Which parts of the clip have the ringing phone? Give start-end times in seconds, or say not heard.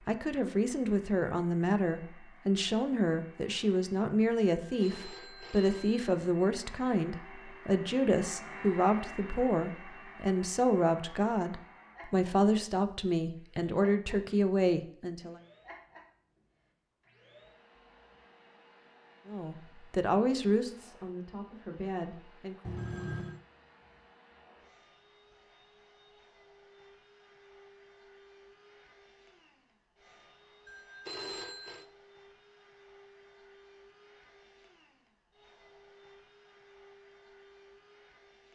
4.6-6.1, 22.6-23.4, 30.6-31.9.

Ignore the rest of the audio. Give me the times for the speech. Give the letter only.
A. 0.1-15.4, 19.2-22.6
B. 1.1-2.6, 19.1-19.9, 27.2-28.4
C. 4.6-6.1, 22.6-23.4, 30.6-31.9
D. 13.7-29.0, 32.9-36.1
A.